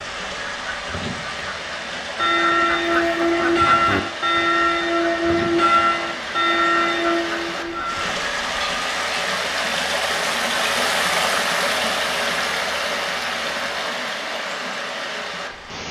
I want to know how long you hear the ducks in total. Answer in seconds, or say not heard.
8 s.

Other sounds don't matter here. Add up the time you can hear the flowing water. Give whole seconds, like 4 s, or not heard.
16 s.